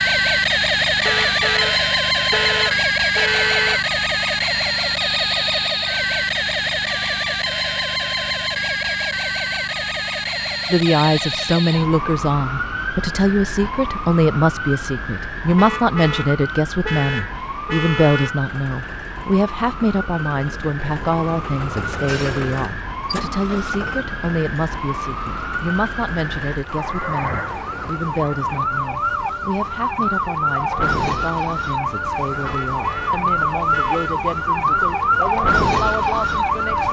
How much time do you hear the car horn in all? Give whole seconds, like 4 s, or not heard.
7 s.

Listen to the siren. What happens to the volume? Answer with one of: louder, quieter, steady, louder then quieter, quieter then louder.
quieter then louder.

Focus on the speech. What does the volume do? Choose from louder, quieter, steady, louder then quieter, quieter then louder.
quieter.